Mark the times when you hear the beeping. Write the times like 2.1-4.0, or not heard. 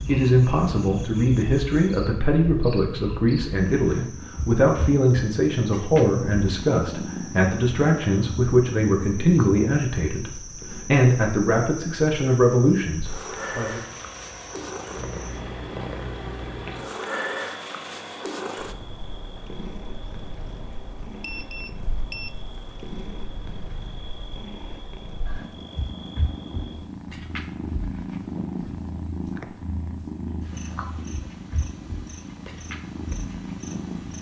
21.2-22.4.